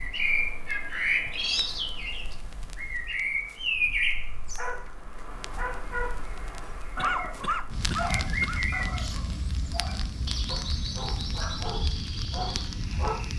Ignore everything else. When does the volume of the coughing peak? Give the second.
7 s.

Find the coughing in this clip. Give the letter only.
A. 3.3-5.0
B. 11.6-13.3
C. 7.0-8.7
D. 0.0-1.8
C.